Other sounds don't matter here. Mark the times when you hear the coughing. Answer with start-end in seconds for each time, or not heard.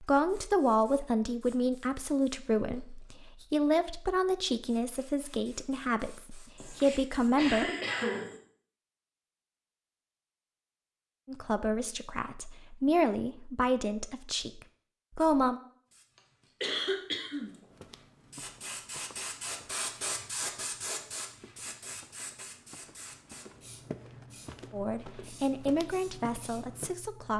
6.5-8.3, 16.6-17.6.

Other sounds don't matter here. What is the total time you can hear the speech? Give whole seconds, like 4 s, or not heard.
15 s.